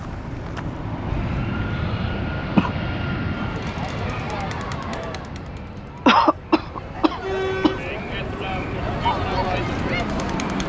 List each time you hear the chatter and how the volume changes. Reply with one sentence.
The chatter can be heard from 3.3 to 10.6 s, getting quieter then louder.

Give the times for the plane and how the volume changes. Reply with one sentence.
You can hear the plane from 0.0 to 10.6 s, getting quieter then louder.